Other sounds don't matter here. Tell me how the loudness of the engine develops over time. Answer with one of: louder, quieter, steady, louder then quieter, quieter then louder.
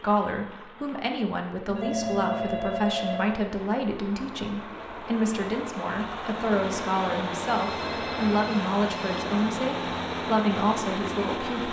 louder.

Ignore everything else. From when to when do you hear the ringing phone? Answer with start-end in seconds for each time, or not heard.
1.6-3.4, 7.5-9.3.